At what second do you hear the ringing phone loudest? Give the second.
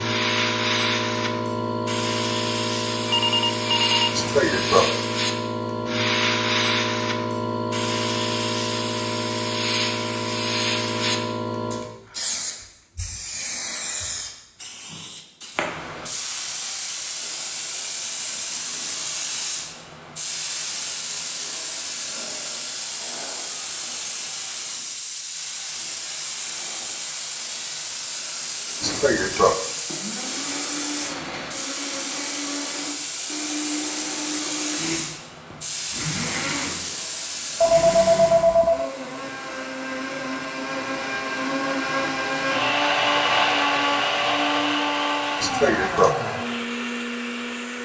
38 s.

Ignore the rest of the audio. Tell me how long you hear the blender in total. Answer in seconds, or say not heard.
19 s.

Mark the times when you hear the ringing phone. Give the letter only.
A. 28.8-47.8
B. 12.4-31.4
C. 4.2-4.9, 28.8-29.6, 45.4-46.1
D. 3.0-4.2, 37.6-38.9
D.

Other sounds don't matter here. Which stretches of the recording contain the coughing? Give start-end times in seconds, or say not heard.
4.2-4.9, 28.8-29.6, 45.4-46.1.